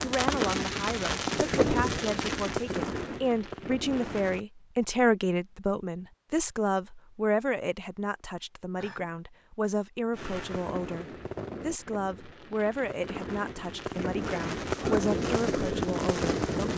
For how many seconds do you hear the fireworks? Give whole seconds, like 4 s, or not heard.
11 s.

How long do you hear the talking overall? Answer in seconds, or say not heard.
17 s.